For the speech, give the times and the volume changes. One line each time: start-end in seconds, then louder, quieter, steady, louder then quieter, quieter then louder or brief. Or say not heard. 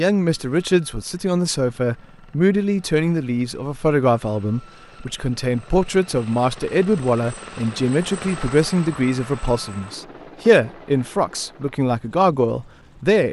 0.0-13.2 steady.